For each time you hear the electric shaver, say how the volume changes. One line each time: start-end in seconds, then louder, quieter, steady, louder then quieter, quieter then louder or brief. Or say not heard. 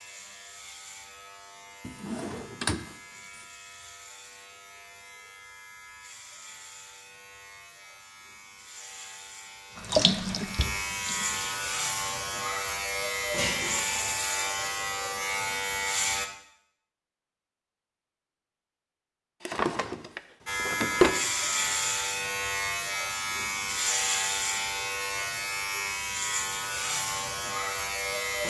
0.0-16.3 louder
20.4-28.4 steady.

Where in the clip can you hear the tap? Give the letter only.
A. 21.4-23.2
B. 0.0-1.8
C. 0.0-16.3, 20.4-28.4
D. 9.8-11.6
D.